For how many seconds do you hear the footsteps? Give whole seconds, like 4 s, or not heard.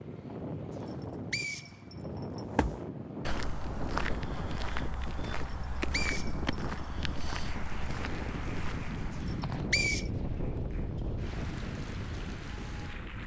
7 s.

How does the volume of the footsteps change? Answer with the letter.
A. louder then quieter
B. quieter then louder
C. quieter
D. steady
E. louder
C.